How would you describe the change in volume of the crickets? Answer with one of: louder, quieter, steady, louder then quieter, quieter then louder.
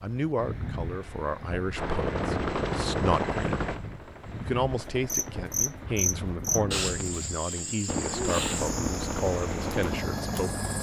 quieter.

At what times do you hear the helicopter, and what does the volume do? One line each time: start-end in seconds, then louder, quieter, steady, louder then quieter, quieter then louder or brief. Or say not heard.
1.8-6.4 quieter
7.8-10.7 brief.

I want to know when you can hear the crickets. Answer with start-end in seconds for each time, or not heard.
5.0-10.6.